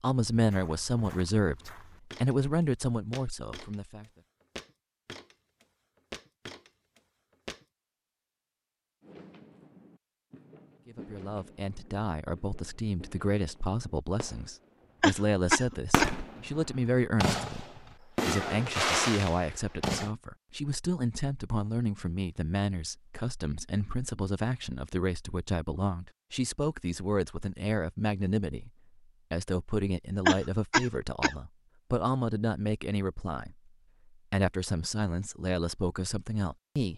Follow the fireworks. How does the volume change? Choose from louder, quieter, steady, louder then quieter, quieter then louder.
louder.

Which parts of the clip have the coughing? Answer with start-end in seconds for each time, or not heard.
15.0-16.1, 30.2-31.4.